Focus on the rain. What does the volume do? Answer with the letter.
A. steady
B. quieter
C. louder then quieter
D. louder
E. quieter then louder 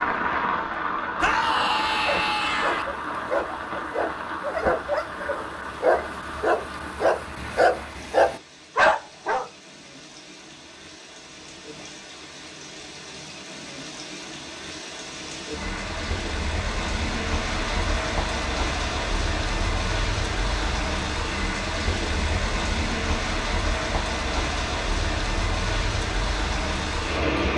E.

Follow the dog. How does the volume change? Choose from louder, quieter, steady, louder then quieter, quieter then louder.
louder.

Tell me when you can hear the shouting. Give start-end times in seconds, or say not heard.
1.1-2.9.